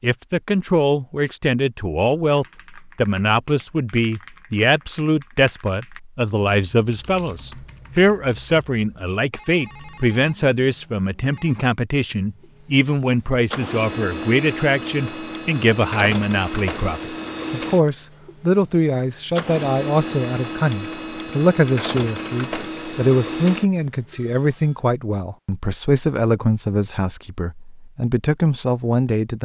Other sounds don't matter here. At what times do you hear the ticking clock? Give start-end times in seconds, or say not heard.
not heard.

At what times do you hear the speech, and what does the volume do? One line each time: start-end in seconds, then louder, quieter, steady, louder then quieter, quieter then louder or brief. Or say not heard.
0.0-29.4 steady.